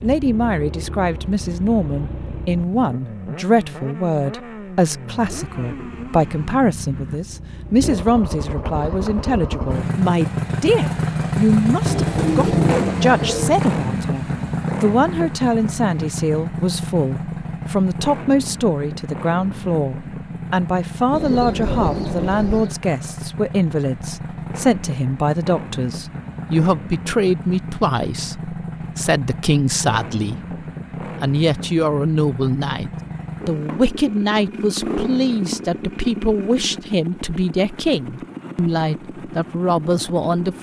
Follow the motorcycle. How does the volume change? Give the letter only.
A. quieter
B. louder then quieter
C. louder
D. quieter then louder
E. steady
B.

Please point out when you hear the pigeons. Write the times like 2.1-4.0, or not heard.
11.8-13.6, 21.1-22.7.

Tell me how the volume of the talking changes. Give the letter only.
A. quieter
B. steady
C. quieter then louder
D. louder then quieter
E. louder
B.